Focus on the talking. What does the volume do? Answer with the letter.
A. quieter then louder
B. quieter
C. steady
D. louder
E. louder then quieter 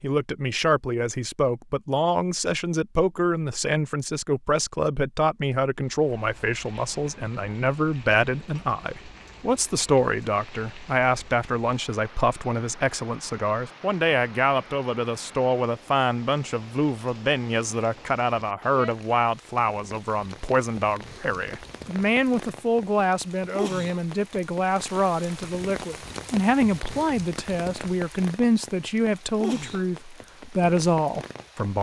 C.